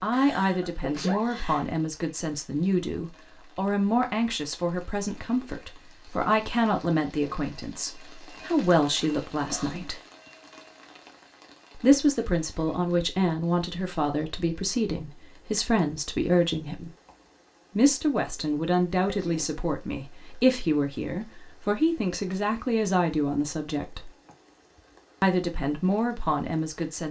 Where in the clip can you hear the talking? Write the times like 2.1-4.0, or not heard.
0.0-10.0, 11.8-16.9, 17.8-24.1, 25.2-27.0.